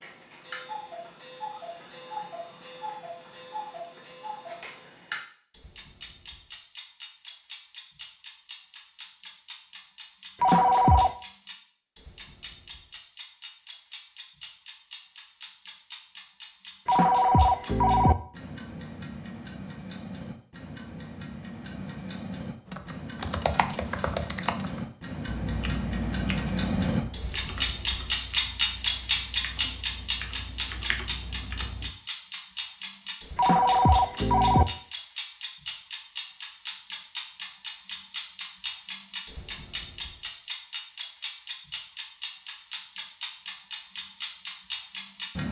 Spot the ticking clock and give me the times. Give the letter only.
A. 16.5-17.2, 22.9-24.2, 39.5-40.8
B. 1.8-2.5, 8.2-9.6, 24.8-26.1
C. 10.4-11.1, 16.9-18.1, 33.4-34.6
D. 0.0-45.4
D.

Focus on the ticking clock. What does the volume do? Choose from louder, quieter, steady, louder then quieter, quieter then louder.
louder then quieter.